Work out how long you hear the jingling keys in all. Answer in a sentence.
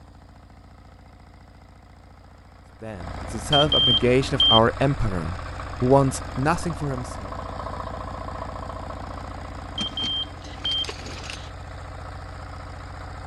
The jingling keys can be heard for 2 seconds in total.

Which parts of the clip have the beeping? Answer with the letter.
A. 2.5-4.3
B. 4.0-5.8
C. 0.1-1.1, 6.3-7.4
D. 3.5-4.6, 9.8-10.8
D.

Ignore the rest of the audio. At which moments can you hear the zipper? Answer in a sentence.
The zipper can't be heard in this clip.